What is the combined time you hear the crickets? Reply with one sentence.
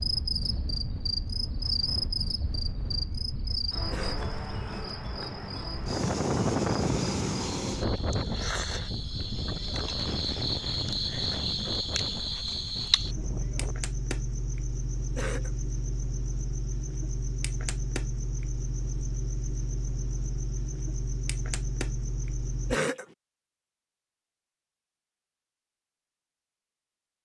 You can hear the crickets for 23 seconds altogether.